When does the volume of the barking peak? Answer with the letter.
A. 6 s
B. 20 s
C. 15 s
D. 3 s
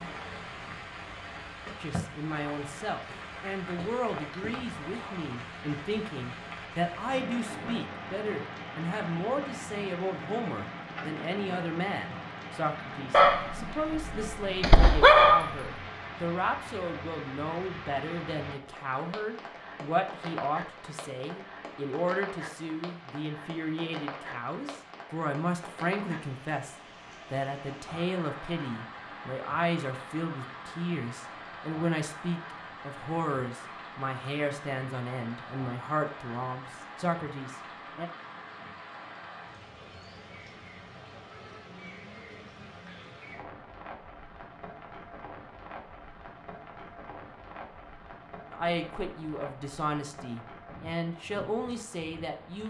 C.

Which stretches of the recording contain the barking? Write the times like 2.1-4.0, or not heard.
13.1-15.6.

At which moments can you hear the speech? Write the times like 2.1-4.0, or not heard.
1.8-38.1, 48.5-52.6.